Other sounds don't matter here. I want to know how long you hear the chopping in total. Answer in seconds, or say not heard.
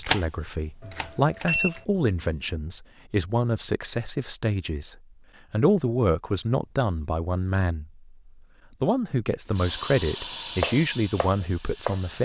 4 s.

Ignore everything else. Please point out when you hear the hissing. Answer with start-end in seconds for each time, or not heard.
9.4-12.2.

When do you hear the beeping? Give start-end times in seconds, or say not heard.
0.8-1.8.